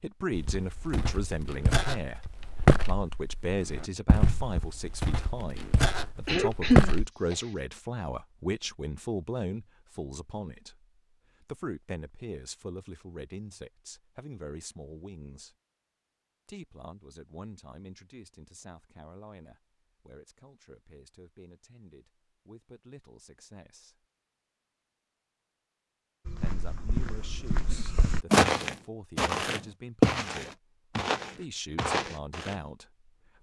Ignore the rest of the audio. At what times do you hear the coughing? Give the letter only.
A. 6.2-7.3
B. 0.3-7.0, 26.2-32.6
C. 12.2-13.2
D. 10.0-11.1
A.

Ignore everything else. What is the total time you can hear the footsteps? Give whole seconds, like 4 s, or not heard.
13 s.